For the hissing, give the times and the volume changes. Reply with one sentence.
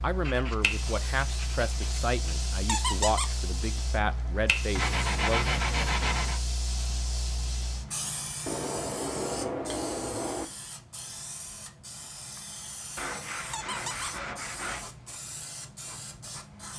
You can hear the hissing from 0.0 to 16.7 s, getting quieter.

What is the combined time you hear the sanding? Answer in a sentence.
You can hear the sanding for 8 seconds altogether.